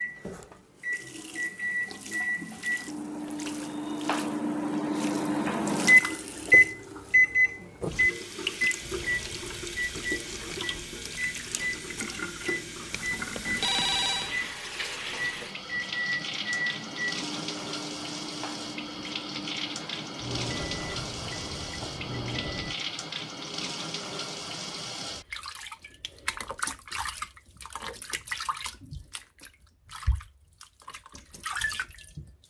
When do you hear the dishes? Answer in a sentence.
The dishes can't be heard in this clip.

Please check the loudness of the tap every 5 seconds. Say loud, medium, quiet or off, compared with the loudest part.
medium, loud, loud, loud, loud, loud, loud.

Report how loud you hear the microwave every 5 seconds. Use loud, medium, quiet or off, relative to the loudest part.
medium, loud, quiet, quiet, quiet, off, off.